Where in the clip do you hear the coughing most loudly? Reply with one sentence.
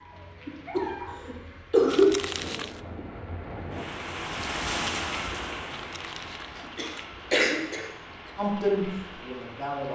The loudest moment of the coughing is at 2 seconds.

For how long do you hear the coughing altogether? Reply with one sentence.
The coughing can be heard for 3 seconds in total.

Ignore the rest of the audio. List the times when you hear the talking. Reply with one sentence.
The talking can be heard from 8.3 to 9.9 s.